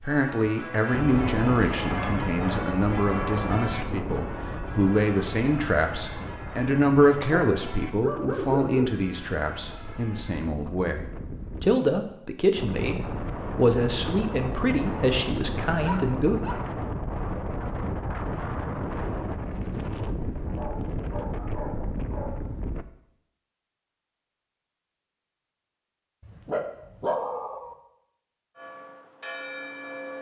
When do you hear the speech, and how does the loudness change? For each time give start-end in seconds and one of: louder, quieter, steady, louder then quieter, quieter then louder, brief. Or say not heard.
0.0-16.4 steady.